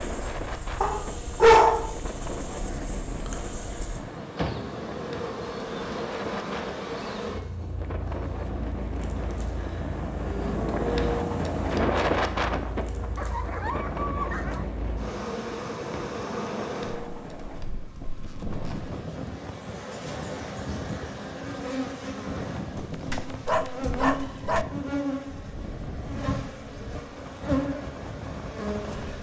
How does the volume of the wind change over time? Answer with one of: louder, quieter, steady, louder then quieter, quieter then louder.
louder then quieter.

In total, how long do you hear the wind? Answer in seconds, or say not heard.
29 s.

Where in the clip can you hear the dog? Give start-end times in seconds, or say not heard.
0.8-1.9, 13.2-14.7, 22.8-24.6.